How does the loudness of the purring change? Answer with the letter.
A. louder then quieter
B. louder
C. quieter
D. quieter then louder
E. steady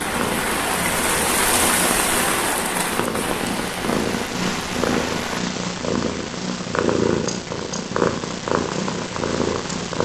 B.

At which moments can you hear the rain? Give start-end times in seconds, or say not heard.
0.0-5.4.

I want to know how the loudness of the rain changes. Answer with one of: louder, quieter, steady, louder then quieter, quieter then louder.
quieter.